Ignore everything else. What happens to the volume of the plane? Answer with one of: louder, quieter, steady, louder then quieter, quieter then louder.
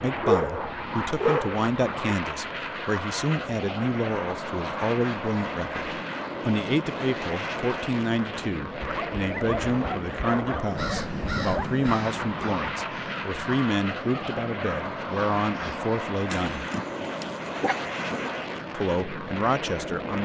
steady.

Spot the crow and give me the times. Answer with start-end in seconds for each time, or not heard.
10.7-15.8.